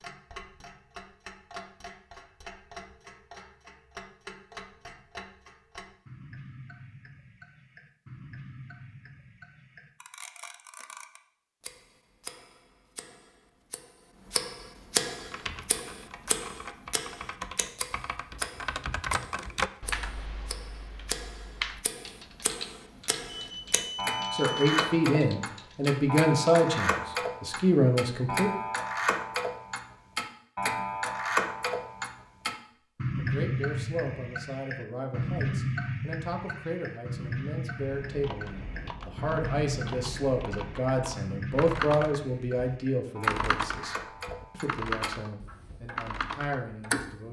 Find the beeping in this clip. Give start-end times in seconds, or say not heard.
23.4-24.8.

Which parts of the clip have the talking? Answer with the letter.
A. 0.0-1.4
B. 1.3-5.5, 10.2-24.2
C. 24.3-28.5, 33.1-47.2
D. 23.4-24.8
C.